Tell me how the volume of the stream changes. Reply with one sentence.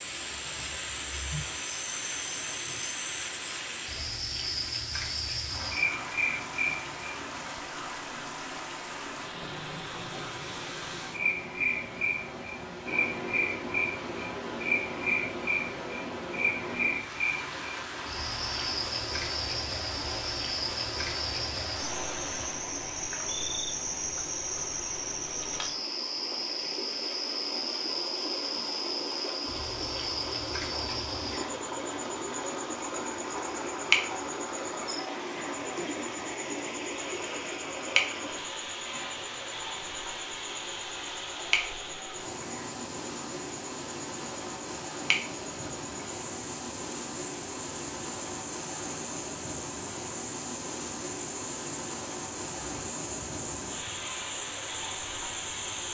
The volume of the stream stays about the same.